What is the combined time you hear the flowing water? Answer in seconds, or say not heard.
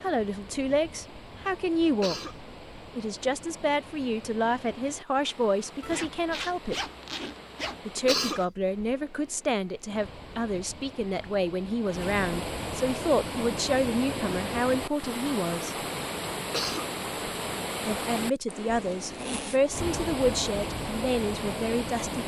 22 s.